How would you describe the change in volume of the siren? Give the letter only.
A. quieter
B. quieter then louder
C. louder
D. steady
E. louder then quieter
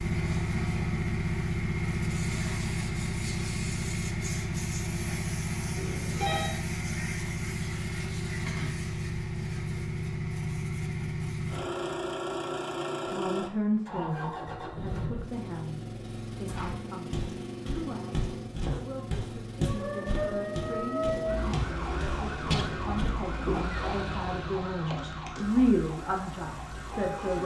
A.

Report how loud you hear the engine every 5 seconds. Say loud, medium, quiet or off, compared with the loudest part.
loud, loud, loud, medium, medium, quiet.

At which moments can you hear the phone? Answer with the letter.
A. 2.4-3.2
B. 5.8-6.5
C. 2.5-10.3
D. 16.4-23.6
B.